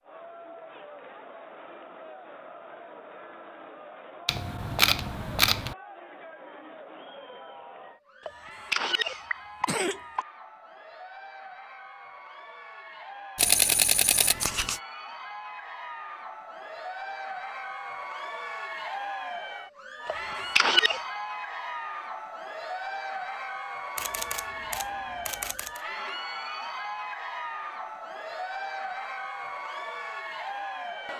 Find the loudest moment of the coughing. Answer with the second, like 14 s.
21 s.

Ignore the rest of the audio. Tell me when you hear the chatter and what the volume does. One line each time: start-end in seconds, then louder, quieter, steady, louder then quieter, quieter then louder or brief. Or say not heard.
0.0-31.1 louder.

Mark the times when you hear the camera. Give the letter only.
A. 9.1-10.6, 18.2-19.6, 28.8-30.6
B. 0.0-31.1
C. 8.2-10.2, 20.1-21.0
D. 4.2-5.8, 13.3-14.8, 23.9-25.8
D.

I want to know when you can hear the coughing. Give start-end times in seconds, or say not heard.
8.2-10.2, 20.1-21.0.